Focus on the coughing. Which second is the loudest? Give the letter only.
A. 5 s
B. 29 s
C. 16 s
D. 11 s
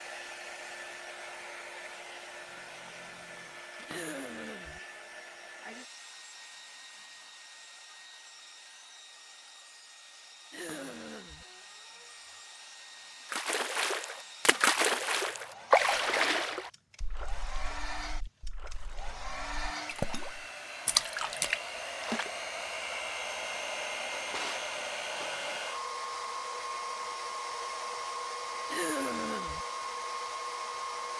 B.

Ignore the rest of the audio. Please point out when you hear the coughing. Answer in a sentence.
You can hear the coughing from 3.9 to 4.8 s, from 10.5 to 11.4 s and from 28.7 to 29.6 s.